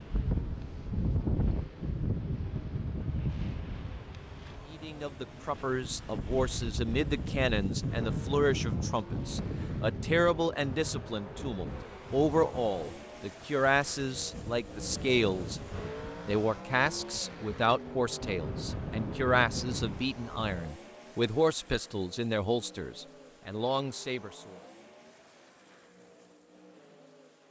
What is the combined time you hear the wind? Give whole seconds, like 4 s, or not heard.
21 s.